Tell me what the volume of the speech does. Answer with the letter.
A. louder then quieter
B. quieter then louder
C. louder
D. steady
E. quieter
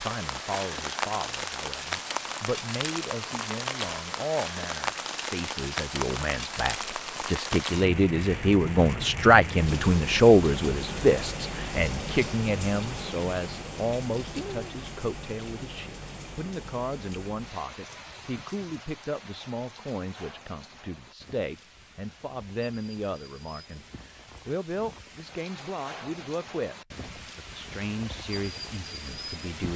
A.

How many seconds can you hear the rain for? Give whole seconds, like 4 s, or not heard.
30 s.